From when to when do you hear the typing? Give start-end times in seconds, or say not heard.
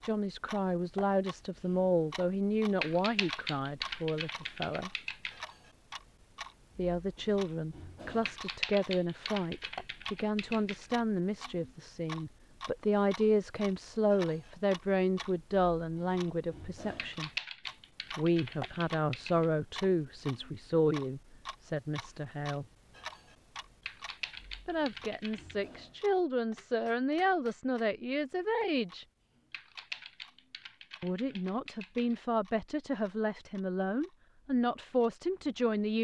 2.8-5.5, 8.2-10.9, 16.9-19.5, 23.9-25.6, 29.5-32.1.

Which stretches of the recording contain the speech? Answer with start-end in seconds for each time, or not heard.
0.0-4.9, 6.8-17.3, 18.1-22.6, 24.6-29.1, 31.0-35.9.